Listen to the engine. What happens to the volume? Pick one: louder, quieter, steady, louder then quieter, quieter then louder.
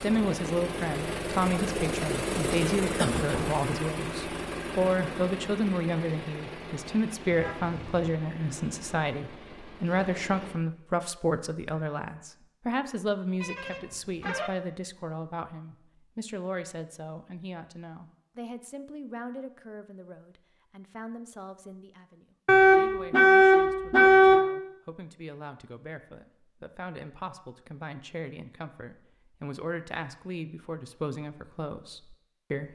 quieter.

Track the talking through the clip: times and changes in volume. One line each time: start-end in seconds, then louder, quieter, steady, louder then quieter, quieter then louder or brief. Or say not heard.
0.0-32.7 quieter then louder.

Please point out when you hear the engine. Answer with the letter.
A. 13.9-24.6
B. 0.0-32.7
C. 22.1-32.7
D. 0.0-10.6
D.